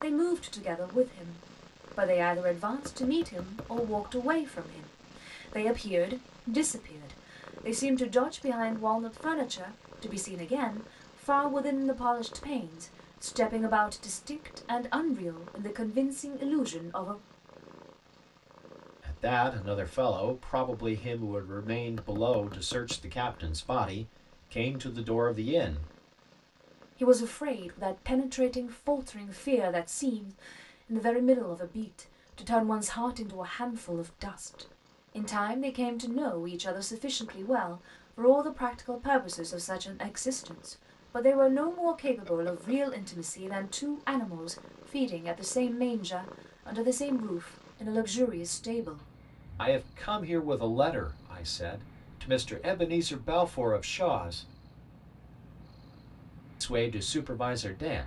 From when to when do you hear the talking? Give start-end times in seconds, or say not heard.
0.0-17.2, 19.1-25.9, 27.0-54.4, 56.6-58.0.